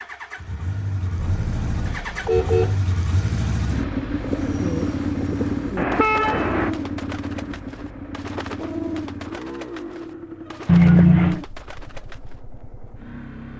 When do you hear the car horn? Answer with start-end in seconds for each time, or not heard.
1.1-2.8, 5.8-6.8, 10.7-11.4.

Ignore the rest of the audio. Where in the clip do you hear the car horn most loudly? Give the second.
11 s.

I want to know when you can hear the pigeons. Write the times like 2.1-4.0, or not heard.
4.1-12.4.